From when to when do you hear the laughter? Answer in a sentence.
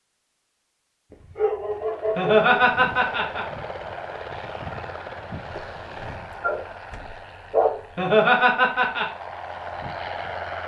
You can hear the laughter from 2.1 to 3.5 s and from 8.0 to 9.1 s.